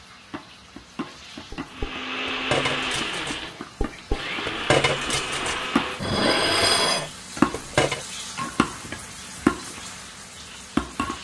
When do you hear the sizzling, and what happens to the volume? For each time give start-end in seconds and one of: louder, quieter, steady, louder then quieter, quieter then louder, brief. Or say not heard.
0.0-11.1 louder.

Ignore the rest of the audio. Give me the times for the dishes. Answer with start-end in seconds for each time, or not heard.
1.5-8.1.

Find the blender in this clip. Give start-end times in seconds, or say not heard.
1.6-7.0.